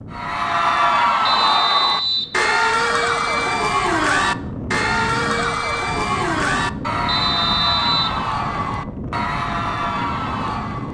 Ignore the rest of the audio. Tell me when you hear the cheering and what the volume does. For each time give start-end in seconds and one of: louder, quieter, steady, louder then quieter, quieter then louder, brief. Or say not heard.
0.1-10.9 quieter.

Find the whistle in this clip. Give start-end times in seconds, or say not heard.
1.2-2.4, 7.0-8.2.